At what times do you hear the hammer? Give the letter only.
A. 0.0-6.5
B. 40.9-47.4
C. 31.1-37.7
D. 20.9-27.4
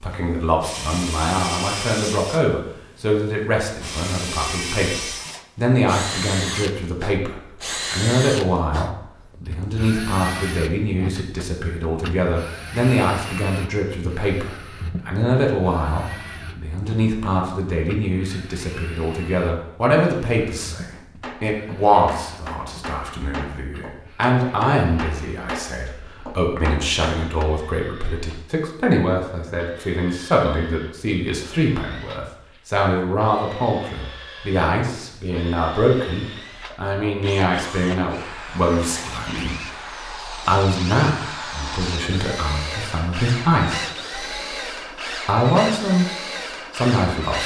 D.